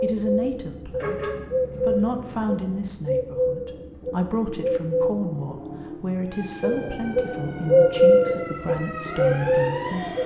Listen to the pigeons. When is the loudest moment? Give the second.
8 s.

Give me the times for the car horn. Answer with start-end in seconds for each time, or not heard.
0.9-2.5.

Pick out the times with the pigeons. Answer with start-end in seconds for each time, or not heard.
0.0-5.2, 6.6-10.2.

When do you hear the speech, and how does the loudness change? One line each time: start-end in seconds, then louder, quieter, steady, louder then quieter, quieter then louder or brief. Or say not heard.
0.0-10.2 steady.